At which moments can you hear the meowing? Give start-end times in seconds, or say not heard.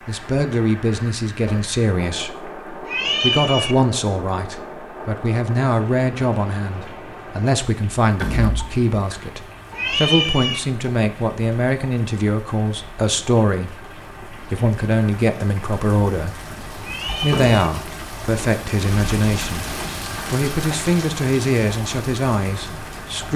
2.9-3.8, 9.7-10.6, 16.8-17.7.